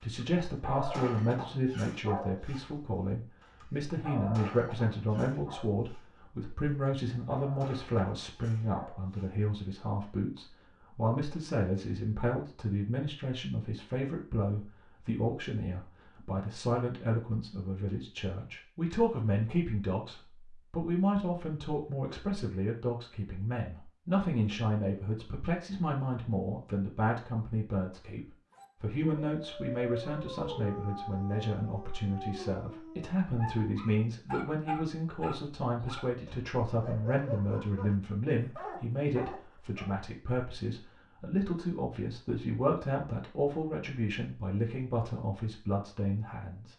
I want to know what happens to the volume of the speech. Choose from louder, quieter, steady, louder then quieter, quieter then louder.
steady.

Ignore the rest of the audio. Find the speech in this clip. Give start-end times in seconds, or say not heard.
0.0-46.7.